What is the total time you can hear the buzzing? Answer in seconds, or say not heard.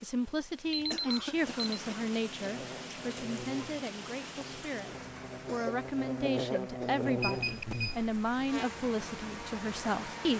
8 s.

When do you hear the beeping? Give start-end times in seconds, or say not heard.
0.7-1.8, 7.2-8.1.